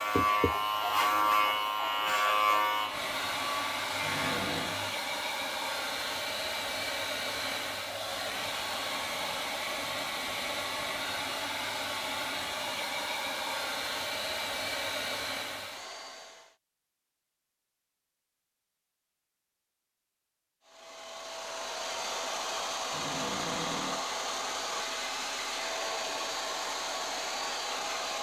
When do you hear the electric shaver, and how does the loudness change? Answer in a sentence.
The electric shaver can be heard from 0.0 to 5.0 s, getting quieter.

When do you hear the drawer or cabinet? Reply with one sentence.
You can hear the drawer or cabinet from 4.0 to 4.8 s and from 22.9 to 24.1 s.